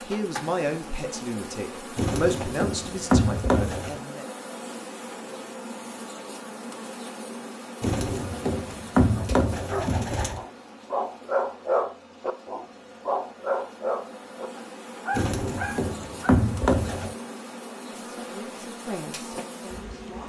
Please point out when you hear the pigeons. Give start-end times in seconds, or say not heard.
1.9-4.0, 7.8-10.4, 15.2-17.1.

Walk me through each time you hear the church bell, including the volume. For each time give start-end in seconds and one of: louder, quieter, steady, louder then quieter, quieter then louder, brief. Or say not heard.
not heard.